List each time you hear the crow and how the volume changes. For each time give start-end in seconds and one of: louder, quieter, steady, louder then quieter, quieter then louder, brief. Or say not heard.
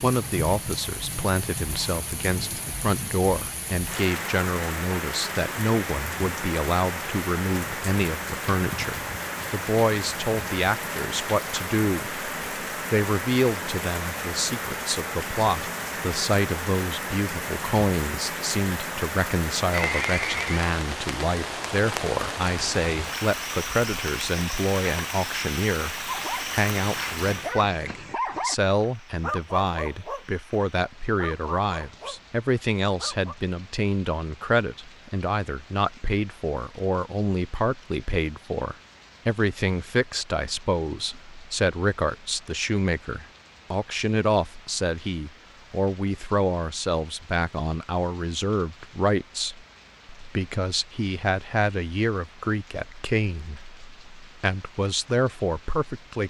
not heard.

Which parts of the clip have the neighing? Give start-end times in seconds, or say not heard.
19.7-20.6.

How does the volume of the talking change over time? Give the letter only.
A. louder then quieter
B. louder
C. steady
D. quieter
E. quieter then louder
C.